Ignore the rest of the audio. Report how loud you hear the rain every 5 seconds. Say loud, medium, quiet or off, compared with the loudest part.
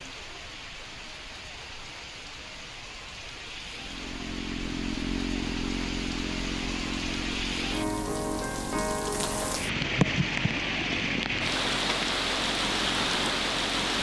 quiet, medium, loud.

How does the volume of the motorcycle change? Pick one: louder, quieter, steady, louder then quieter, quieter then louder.
quieter.